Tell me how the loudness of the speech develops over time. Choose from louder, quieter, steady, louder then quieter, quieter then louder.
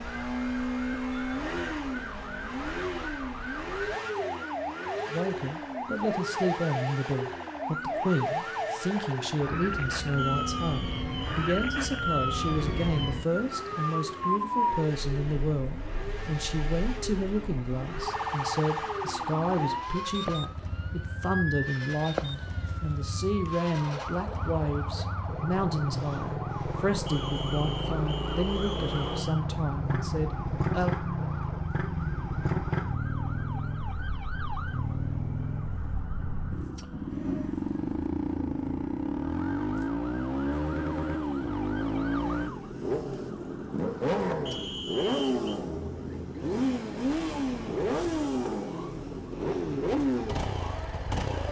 steady.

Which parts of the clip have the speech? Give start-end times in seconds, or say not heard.
5.1-30.9.